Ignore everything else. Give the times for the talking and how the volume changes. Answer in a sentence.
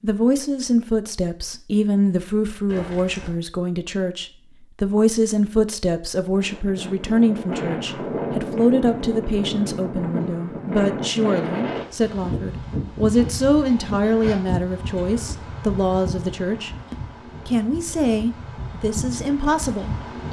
You can hear the talking from 0.0 to 20.2 s, at a steady volume.